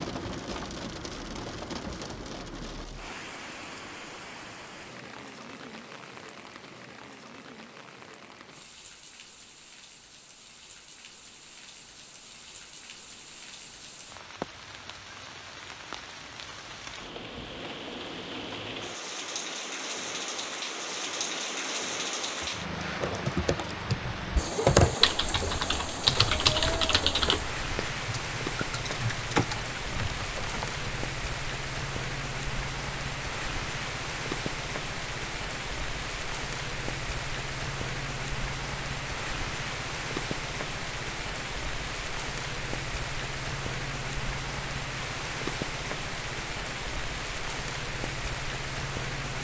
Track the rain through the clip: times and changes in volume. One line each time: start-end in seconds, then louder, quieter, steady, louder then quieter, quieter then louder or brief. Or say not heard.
0.0-49.4 louder.